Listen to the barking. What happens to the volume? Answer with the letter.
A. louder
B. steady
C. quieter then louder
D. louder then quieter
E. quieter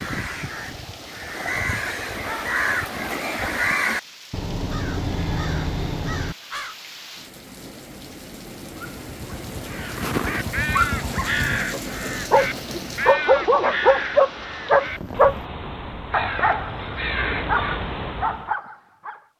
D.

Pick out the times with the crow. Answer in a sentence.
You can hear the crow from 0.0 to 6.8 s and from 9.7 to 18.5 s.